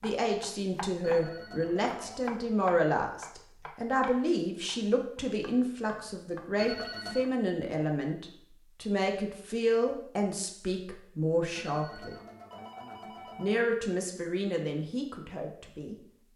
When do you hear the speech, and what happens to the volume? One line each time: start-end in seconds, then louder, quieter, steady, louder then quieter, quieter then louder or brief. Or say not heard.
0.0-12.2 steady
13.3-16.3 brief.